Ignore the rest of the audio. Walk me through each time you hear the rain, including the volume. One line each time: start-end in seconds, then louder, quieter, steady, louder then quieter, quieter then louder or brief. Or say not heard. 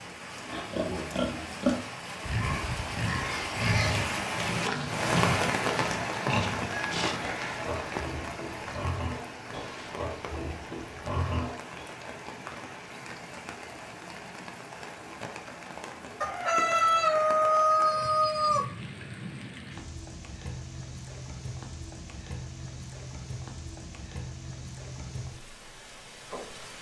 0.0-26.7 quieter.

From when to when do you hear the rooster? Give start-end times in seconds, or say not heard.
6.1-8.0, 16.2-18.7.